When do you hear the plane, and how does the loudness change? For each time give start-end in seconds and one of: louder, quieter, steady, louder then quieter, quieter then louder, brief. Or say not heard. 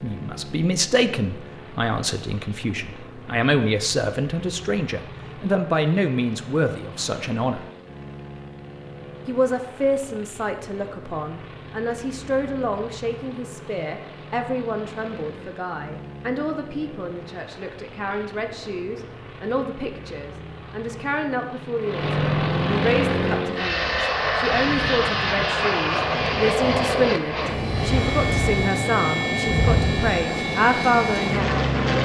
0.0-32.0 louder.